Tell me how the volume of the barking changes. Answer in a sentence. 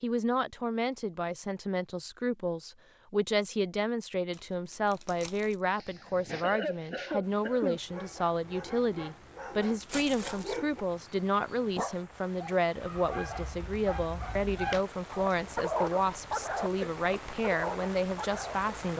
The loudness of the barking goes up.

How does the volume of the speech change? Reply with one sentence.
The loudness of the speech stays about the same.